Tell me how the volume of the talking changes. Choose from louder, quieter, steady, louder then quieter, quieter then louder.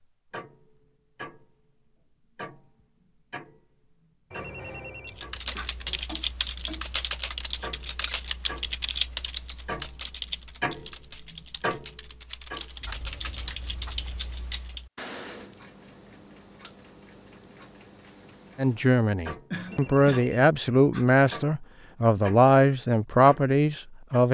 louder.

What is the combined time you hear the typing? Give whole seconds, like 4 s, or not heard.
10 s.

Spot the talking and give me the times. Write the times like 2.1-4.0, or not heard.
18.6-24.2.